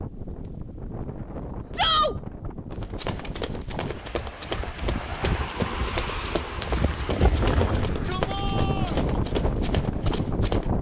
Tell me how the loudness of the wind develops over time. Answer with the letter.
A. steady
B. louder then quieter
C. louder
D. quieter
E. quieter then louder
C.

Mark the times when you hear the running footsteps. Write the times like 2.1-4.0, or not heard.
2.7-10.7.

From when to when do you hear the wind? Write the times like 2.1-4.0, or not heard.
0.0-10.7.